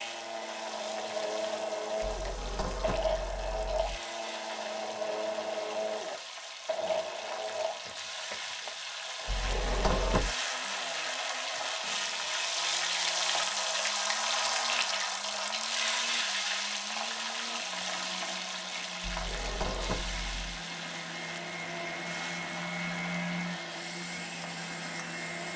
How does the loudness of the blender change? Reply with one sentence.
The volume of the blender goes down, then up.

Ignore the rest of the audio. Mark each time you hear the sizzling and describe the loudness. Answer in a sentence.
The sizzling can be heard from 0.0 to 25.5 s, getting louder then quieter.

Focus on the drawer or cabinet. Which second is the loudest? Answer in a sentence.
The loudest moment of the drawer or cabinet is at 10 seconds.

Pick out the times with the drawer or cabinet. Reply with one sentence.
You can hear the drawer or cabinet from 2.0 to 4.0 s, from 9.2 to 10.3 s and from 19.0 to 20.6 s.